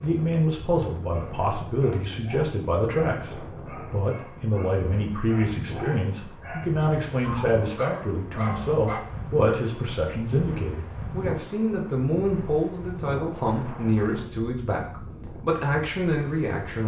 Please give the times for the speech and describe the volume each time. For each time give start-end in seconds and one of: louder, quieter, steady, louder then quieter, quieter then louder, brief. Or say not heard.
0.0-16.8 steady.